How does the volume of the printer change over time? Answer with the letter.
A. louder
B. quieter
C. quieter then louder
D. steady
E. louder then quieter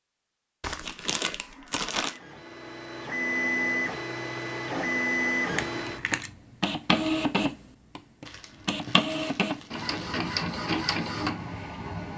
D.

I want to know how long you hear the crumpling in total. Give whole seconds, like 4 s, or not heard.
4 s.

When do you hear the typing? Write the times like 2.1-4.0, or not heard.
not heard.